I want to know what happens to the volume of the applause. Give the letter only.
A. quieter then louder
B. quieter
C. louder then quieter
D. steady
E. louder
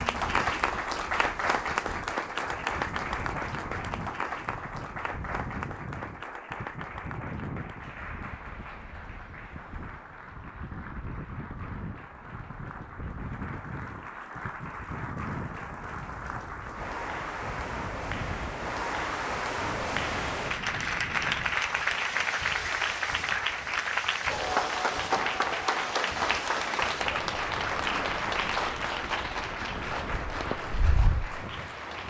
A.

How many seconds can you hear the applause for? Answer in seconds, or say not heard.
32 s.